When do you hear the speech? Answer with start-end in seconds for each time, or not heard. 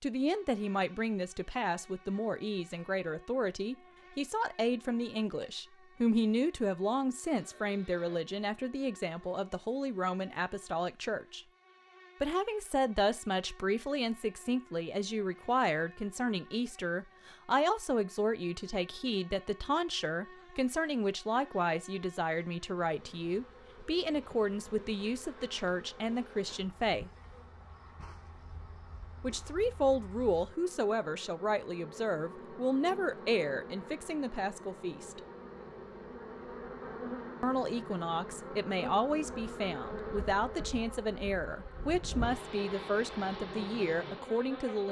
0.0-11.4, 12.2-27.1, 29.2-35.2, 37.4-44.8.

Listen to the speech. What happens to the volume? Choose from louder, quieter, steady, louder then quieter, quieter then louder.
steady.